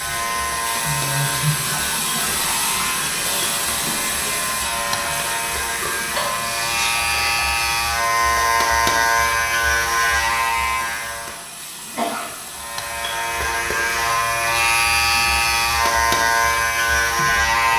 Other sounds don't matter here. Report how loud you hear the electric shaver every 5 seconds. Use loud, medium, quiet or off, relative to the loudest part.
medium, loud, loud, loud.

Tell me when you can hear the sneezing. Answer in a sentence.
The sneezing can be heard from 0.8 to 1.6 s, from 6.2 to 7.3 s and from 11.8 to 12.3 s.